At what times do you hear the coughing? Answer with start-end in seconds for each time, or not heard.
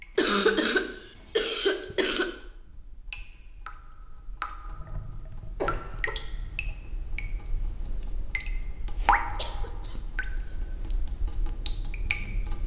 0.1-2.3, 4.7-6.8, 8.9-10.6.